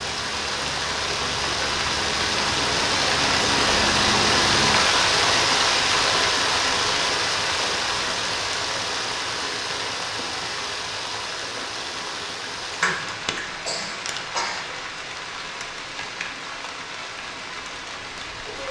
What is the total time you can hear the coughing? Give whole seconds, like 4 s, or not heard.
2 s.